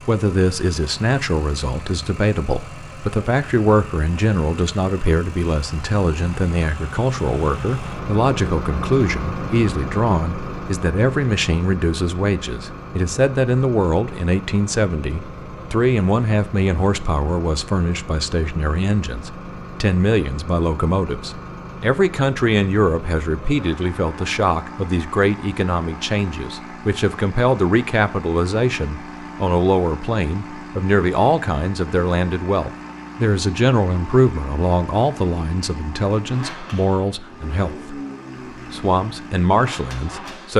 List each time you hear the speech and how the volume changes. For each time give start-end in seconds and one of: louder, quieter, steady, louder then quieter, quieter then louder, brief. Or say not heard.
0.1-38.0 steady
38.7-40.5 brief.